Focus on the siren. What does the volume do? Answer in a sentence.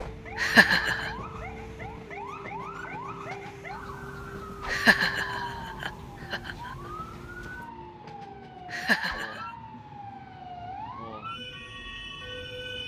The volume of the siren stays about the same.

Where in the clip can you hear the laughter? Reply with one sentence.
You can hear the laughter from 0.3 to 1.1 s, from 4.7 to 6.7 s and from 8.7 to 9.4 s.